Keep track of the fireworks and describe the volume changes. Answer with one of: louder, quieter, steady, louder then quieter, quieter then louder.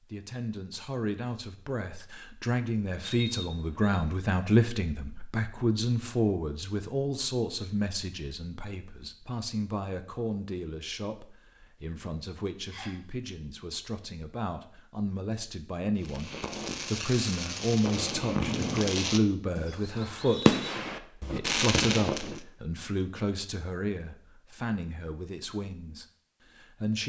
louder.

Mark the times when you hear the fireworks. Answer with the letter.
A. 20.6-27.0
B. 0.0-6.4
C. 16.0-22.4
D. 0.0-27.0
C.